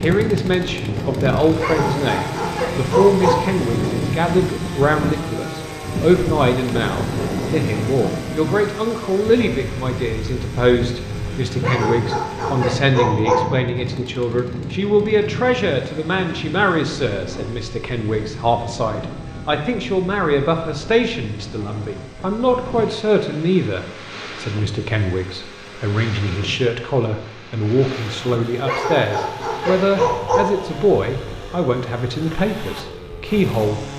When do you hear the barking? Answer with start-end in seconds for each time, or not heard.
1.6-3.4, 11.6-13.4, 28.6-30.4.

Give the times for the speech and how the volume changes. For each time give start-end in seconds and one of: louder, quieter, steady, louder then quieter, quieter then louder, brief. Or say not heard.
0.0-33.8 steady.